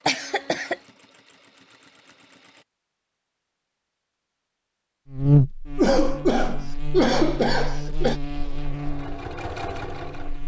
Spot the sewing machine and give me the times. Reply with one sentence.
You can hear the sewing machine from 0.0 to 2.6 s and from 8.3 to 10.4 s.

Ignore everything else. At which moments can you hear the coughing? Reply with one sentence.
The coughing can be heard from 0.1 to 0.8 s and from 5.8 to 8.2 s.